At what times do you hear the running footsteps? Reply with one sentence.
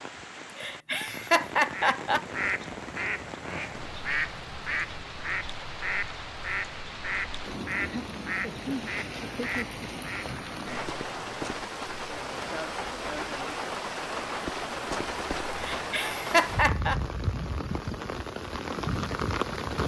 The running footsteps can't be heard in this clip.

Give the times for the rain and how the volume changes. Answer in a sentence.
The rain can be heard from 0.0 to 19.8 s, getting louder.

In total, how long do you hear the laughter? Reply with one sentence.
The laughter can be heard for 5 seconds in total.